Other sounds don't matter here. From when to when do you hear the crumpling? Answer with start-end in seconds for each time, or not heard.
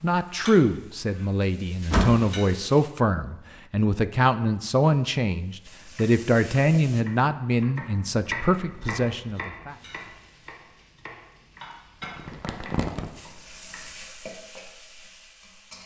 12.0-13.1.